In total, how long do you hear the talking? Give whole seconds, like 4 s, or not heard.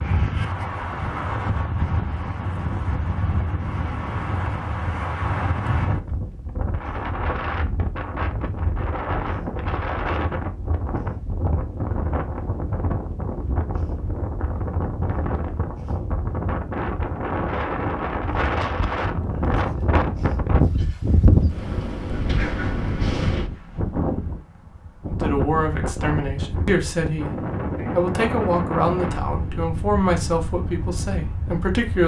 7 s.